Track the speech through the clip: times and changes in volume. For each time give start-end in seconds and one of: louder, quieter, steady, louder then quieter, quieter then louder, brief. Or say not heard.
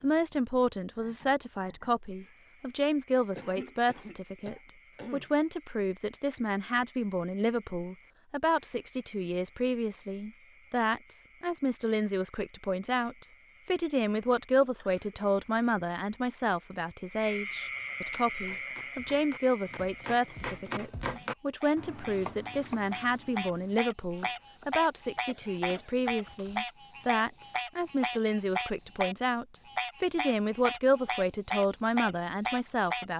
0.0-33.1 steady.